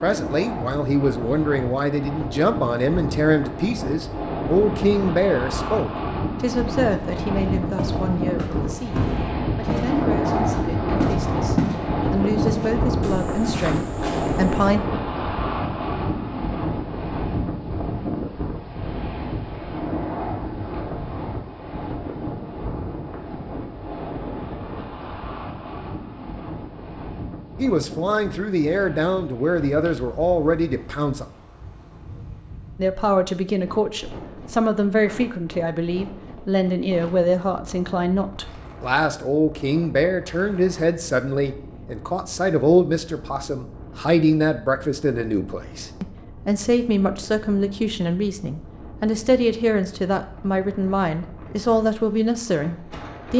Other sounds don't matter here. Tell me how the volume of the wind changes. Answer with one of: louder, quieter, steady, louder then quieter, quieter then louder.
quieter.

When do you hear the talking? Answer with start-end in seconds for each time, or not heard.
0.0-14.8, 27.6-31.2, 32.8-53.3.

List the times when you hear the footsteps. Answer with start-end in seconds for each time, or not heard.
7.8-11.8, 12.4-14.6.